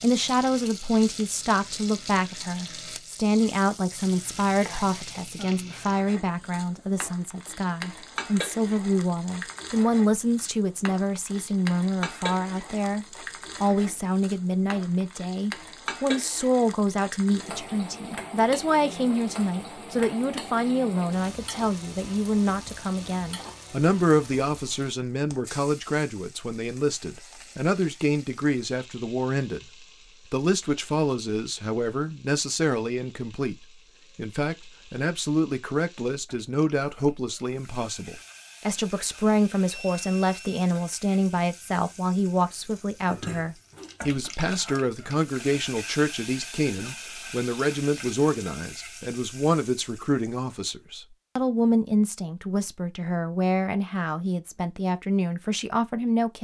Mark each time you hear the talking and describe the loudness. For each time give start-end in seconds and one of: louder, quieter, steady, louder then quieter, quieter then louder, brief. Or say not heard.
0.0-56.3 steady.